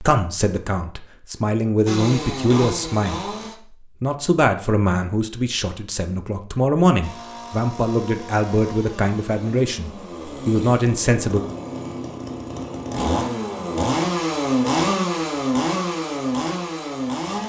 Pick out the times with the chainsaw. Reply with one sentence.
The chainsaw can be heard from 1.9 to 3.5 s and from 7.0 to 17.4 s.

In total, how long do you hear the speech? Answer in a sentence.
You can hear the speech for 11 seconds altogether.